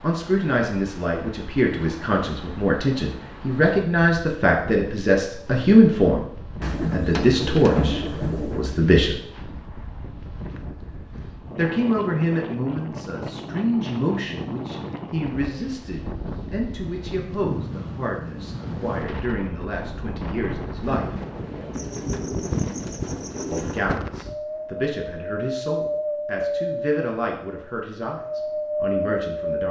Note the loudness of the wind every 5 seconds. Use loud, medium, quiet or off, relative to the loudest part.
quiet, quiet, medium, medium, medium, loud.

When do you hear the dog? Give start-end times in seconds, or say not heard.
not heard.